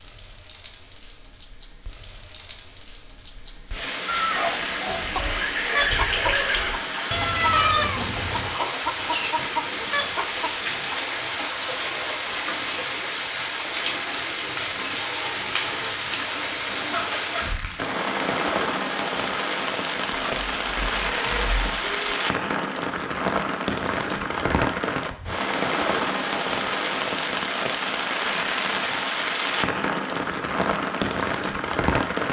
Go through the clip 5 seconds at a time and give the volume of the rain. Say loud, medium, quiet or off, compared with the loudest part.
medium, loud, loud, loud, loud, loud, loud.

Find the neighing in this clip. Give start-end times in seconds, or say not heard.
4.0-6.8.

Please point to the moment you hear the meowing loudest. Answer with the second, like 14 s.
8 s.